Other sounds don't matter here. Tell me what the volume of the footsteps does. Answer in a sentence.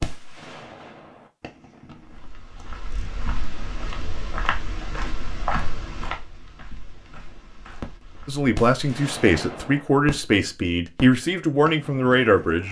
The loudness of the footsteps goes up, then down.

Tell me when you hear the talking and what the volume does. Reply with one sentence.
The talking can be heard from 8.2 to 12.6 s, at a steady volume.